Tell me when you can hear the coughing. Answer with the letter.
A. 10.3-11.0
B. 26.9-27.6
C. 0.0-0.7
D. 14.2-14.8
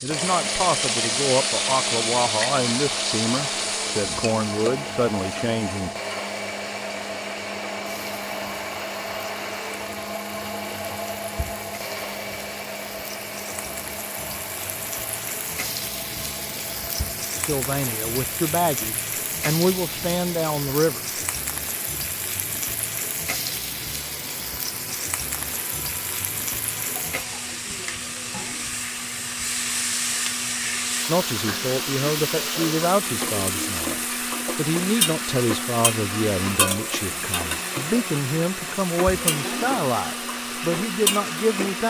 B.